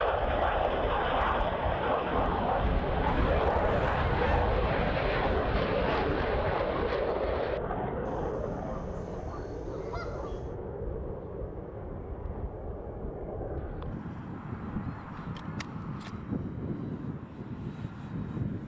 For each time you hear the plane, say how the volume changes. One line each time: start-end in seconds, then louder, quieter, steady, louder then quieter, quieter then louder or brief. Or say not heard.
0.0-18.6 quieter.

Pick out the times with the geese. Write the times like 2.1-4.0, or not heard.
3.0-4.6, 8.1-10.6, 14.3-16.2.